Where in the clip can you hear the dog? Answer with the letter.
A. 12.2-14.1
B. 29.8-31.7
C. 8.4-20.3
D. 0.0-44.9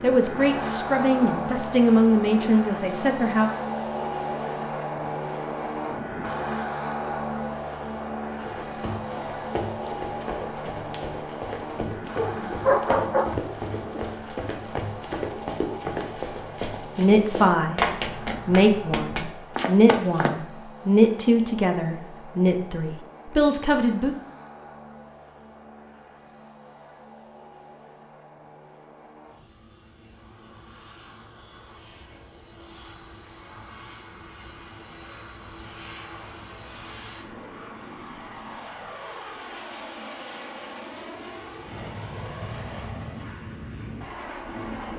A.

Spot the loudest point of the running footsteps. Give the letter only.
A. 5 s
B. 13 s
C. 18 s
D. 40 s
C.